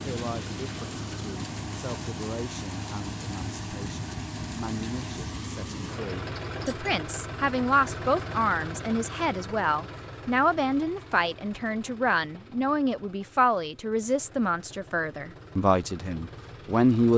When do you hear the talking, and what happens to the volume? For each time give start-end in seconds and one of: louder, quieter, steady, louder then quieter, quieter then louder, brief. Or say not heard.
0.0-17.1 louder.